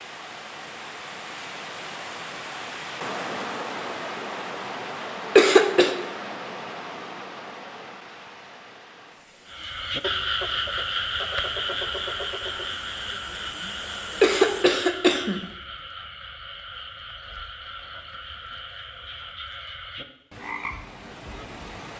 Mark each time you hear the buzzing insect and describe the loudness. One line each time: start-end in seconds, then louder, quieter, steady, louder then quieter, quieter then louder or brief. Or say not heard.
not heard.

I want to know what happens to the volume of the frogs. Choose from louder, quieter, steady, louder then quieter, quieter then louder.
quieter.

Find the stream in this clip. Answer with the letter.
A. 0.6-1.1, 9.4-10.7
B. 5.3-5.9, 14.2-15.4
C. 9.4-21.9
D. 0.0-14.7
D.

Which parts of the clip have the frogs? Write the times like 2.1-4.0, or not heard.
9.4-21.9.